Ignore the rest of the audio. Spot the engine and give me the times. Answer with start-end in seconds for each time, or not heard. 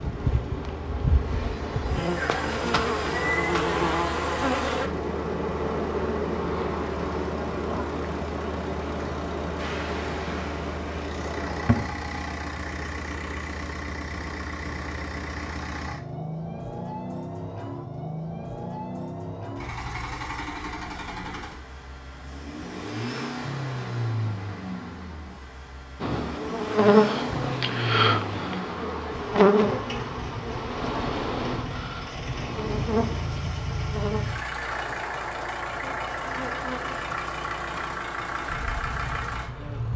0.0-39.9.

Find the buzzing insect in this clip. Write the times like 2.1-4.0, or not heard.
0.0-11.9, 26.0-39.9.